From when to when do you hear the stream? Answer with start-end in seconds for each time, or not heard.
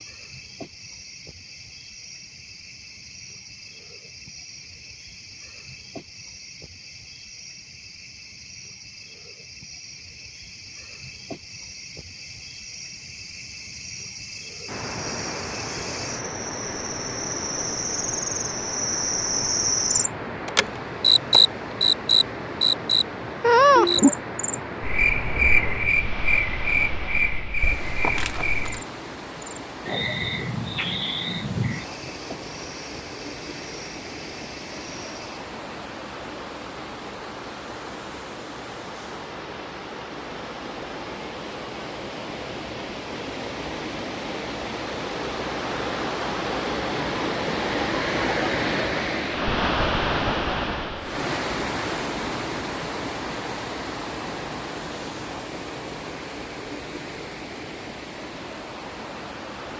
14.7-59.7.